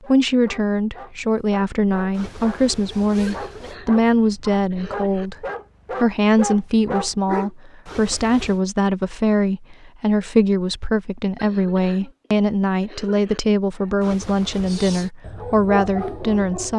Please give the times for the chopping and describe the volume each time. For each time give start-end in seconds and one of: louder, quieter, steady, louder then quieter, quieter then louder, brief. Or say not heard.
not heard.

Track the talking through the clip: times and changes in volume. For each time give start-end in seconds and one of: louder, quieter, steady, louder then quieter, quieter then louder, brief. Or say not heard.
0.1-16.7 steady.